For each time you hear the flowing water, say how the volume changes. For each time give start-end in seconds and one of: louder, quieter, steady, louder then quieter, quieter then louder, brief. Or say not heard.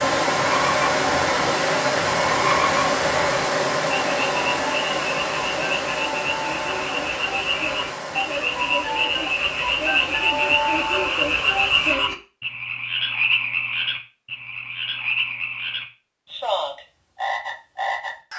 0.0-11.9 quieter.